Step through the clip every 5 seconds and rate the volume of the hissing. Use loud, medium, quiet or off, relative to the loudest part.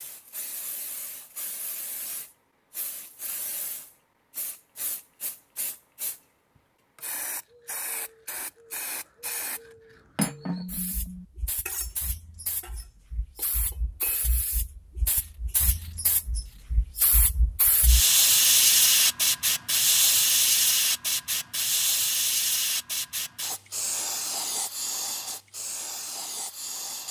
quiet, quiet, quiet, loud, loud, medium.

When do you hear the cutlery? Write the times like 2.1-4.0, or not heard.
10.2-16.6.